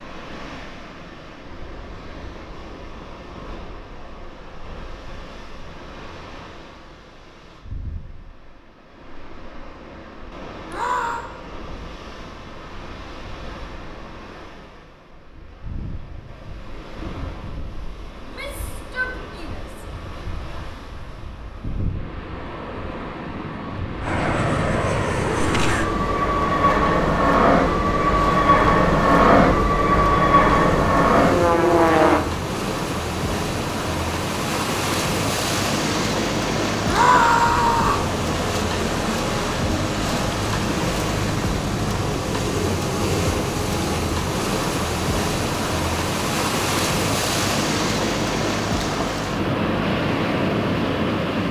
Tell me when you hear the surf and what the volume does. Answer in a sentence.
You can hear the surf from 0.0 to 51.4 s, getting louder.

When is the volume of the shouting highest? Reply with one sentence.
The volume of the shouting peaks at 37 seconds.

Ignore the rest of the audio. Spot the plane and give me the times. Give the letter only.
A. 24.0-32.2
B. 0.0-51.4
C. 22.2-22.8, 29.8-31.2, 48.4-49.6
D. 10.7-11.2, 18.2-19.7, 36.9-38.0
A.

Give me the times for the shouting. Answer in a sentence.
The shouting can be heard from 10.7 to 11.2 s, from 18.2 to 19.7 s and from 36.9 to 38.0 s.